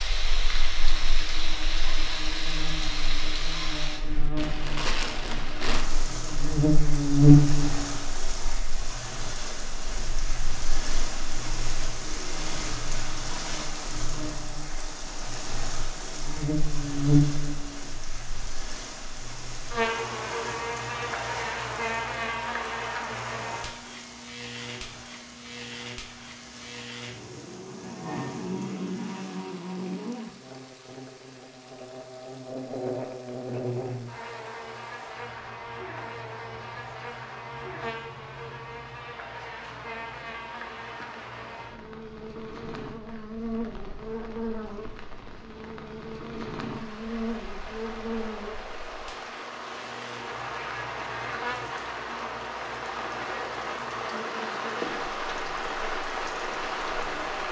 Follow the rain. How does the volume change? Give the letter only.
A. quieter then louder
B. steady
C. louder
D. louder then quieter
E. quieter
A.